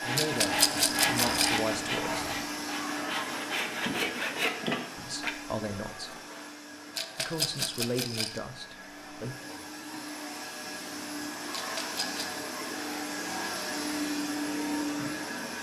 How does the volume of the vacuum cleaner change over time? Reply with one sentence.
The loudness of the vacuum cleaner goes down, then up.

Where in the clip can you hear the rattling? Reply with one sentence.
You can hear the rattling from 0.1 to 1.6 s, from 7.0 to 8.4 s and from 11.5 to 12.4 s.